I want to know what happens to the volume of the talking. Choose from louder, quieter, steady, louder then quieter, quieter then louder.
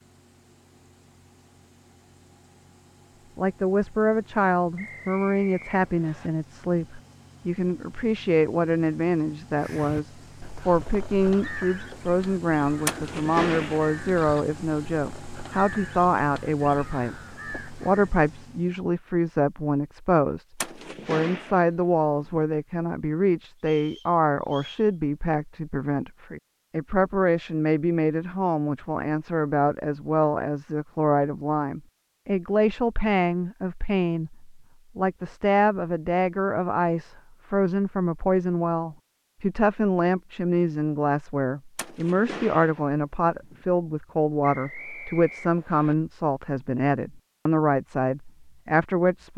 steady.